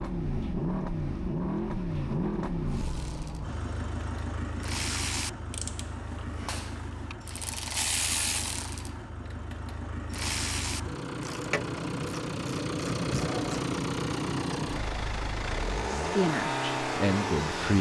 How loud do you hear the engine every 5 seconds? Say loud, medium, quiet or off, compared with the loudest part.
loud, medium, loud, loud.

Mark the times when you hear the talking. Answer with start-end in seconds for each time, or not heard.
16.0-17.7.